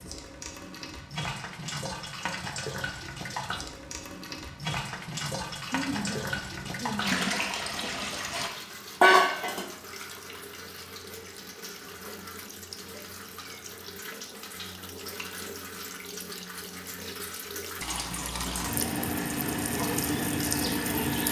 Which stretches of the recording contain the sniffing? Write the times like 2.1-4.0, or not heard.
5.7-7.2.